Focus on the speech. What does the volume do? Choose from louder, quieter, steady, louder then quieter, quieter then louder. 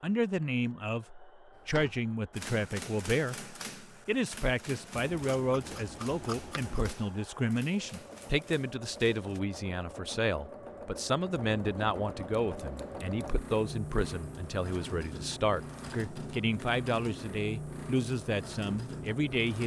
steady.